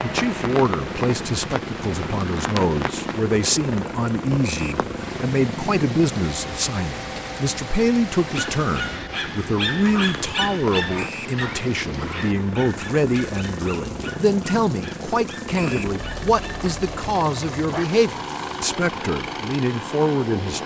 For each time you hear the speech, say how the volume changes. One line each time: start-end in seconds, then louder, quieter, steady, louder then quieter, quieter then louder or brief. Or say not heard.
0.0-20.6 steady.